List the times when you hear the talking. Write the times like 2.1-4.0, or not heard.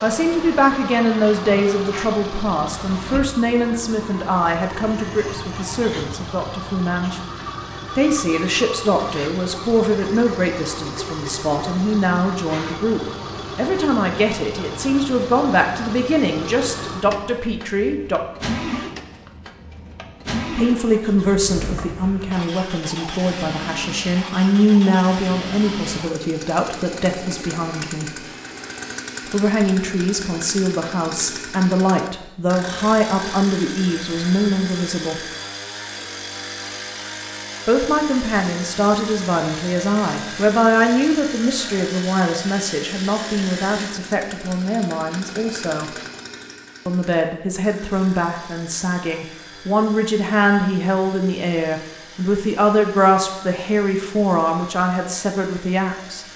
0.0-7.2, 8.0-18.2, 20.6-28.1, 29.3-35.2, 37.6-45.9, 46.9-56.2.